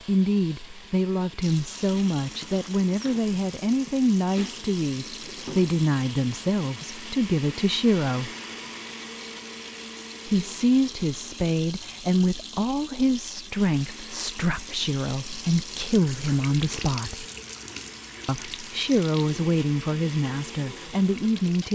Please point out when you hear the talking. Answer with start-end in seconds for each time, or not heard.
0.1-8.3, 10.2-17.2, 18.2-21.6.